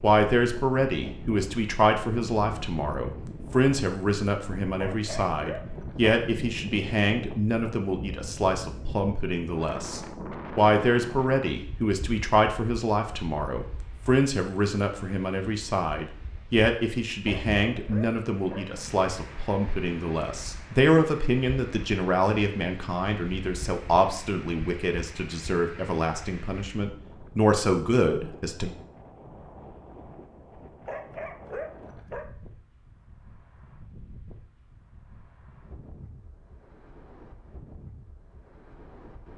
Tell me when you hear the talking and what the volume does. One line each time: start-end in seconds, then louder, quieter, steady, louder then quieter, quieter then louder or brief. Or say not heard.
0.0-28.7 steady.